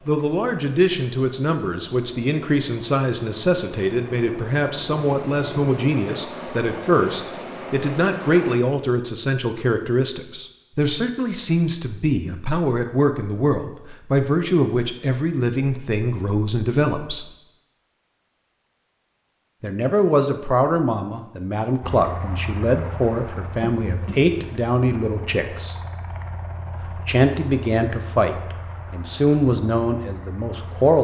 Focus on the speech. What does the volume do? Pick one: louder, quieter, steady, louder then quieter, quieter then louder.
steady.